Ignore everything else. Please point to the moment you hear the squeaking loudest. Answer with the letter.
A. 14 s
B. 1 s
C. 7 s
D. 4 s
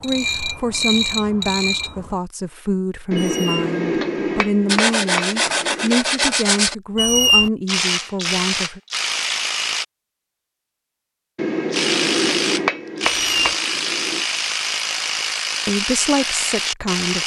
C.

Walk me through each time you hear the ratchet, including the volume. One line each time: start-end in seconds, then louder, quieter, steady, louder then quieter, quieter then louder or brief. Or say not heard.
0.0-2.1 brief
7.7-9.8 brief
11.7-17.2 steady.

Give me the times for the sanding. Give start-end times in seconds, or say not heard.
4.7-6.8.